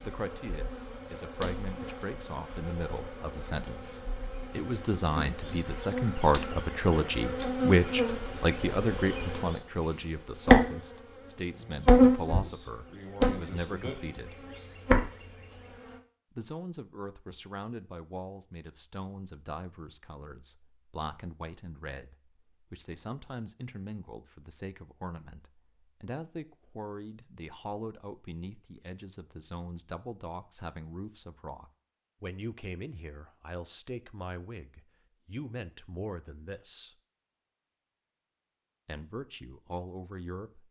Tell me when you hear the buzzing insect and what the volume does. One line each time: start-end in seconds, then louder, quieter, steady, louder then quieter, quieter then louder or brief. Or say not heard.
0.0-16.0 louder then quieter.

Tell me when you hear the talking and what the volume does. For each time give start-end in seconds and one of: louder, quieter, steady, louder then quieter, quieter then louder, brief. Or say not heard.
0.0-14.3 louder then quieter
16.4-37.0 steady
38.9-40.6 brief.